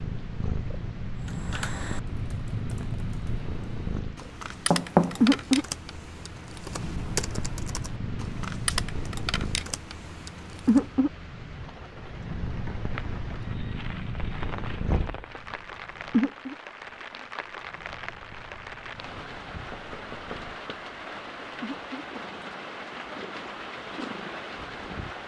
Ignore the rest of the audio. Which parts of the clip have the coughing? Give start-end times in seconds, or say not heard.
not heard.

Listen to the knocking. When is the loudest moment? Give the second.
5 s.